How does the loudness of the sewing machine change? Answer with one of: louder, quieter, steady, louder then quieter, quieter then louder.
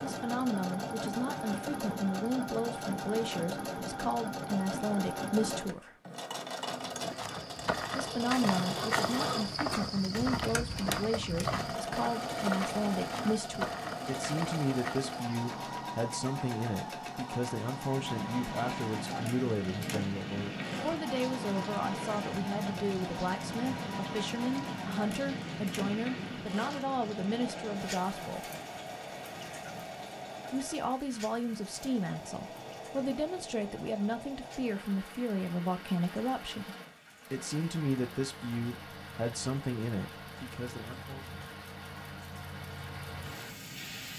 quieter.